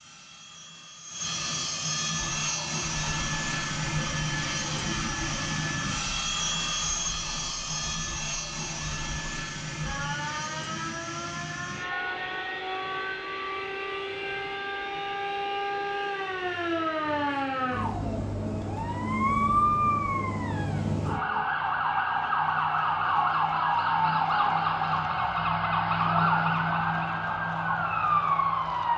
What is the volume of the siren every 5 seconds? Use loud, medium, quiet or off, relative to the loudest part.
quiet, quiet, medium, loud, loud, loud.